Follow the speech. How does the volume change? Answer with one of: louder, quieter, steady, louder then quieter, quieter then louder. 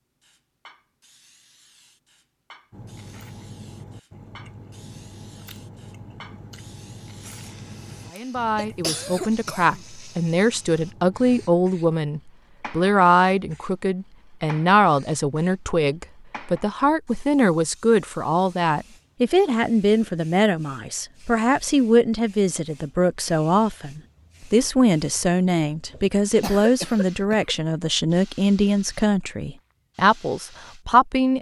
steady.